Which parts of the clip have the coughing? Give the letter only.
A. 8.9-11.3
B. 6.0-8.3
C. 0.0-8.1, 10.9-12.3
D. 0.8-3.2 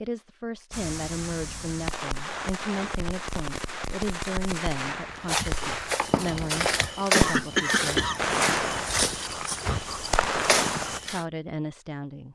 B.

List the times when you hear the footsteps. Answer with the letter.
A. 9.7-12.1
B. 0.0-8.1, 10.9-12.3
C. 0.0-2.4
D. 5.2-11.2
D.